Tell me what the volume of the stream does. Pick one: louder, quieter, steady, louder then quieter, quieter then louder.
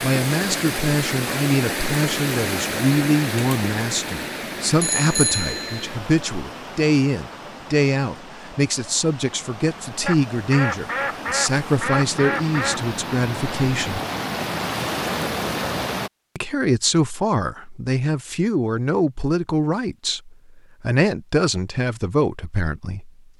quieter then louder.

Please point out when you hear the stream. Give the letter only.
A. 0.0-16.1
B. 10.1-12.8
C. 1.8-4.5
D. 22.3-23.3
A.